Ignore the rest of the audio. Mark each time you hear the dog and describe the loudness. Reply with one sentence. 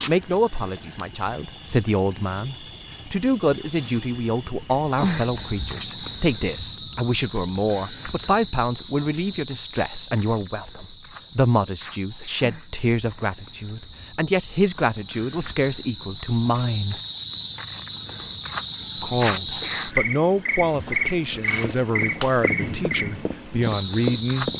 You can't hear the dog here.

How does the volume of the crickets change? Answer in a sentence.
The volume of the crickets goes down, then up.